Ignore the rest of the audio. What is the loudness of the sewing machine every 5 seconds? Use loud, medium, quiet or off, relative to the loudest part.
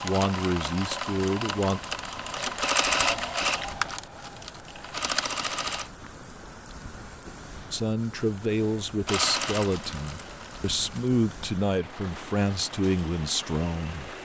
loud, loud, quiet.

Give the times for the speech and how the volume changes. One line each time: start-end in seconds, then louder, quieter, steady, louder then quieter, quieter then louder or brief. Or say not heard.
0.0-1.8 brief
7.7-14.2 steady.